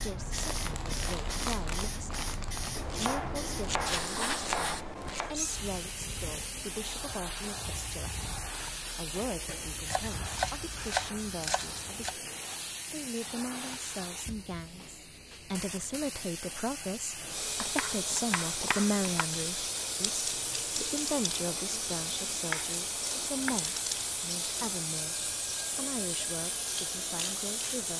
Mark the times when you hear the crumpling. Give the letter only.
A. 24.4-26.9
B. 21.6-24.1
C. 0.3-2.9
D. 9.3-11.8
C.